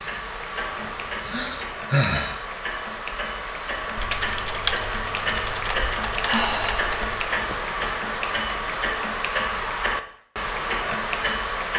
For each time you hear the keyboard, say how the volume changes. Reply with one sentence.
You can hear the keyboard from 3.8 to 8.9 s, getting quieter.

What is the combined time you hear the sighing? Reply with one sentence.
The sighing can be heard for 2 seconds in total.